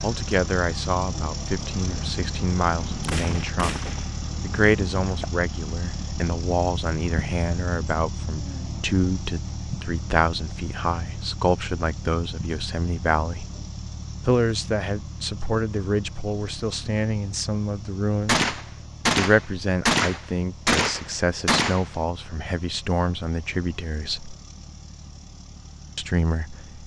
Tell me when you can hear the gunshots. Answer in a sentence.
You can hear the gunshots from 1.6 to 5.2 s and from 18.2 to 21.9 s.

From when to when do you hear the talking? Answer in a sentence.
The talking can be heard from 0.0 to 13.4 s, from 14.2 to 18.4 s, from 19.1 to 24.4 s and from 25.9 to 26.8 s.